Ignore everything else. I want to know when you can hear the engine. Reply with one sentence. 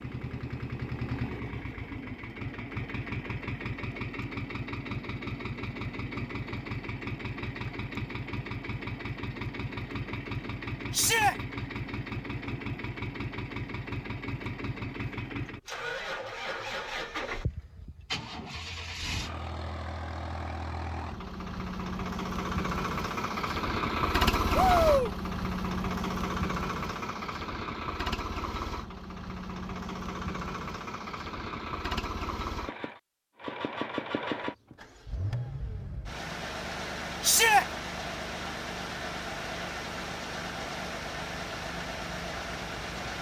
The engine can be heard from 0.0 to 43.1 s.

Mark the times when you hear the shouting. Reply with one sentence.
The shouting can be heard from 10.9 to 11.3 s, from 24.5 to 25.1 s and from 37.2 to 37.6 s.